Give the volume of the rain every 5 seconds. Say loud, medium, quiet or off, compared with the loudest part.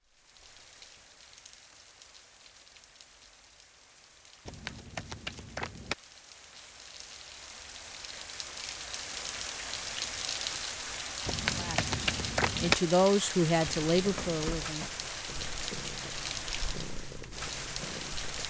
quiet, medium, loud, loud.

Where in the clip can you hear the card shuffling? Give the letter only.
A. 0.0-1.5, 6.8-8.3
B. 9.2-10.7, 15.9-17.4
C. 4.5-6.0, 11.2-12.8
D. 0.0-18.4
C.